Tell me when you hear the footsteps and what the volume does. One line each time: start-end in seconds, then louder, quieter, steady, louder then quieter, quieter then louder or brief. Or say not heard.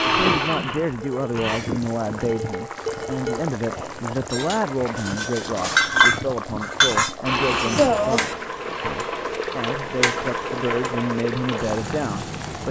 not heard.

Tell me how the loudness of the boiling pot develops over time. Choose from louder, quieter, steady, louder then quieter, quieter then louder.
louder.